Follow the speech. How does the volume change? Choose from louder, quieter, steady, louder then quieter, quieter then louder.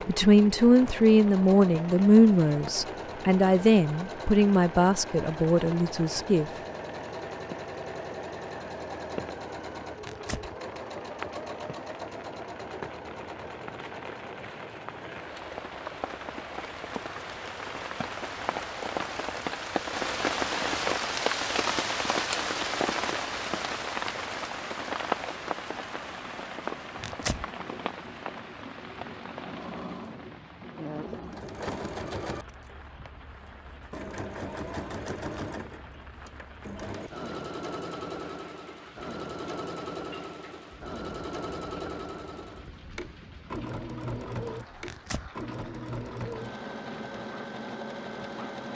quieter.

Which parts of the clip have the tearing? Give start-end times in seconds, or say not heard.
10.0-10.5, 27.0-27.4, 44.8-45.3.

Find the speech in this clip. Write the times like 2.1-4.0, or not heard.
0.1-6.5.